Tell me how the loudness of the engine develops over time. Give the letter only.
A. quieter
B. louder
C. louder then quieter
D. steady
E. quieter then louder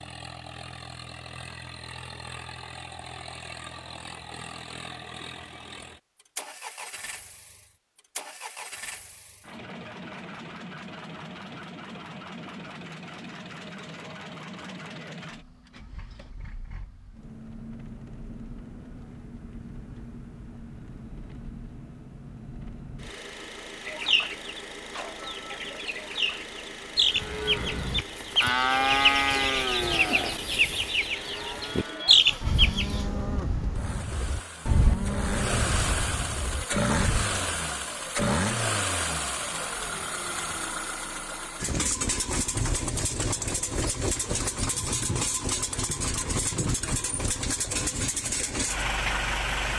B.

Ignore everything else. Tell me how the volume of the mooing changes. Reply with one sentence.
The loudness of the mooing goes down.